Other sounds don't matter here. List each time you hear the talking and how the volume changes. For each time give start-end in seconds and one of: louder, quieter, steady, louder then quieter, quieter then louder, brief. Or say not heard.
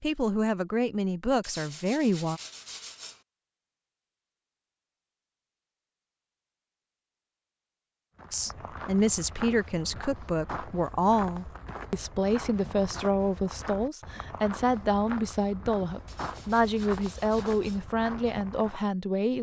0.0-2.4 brief
8.3-19.3 steady.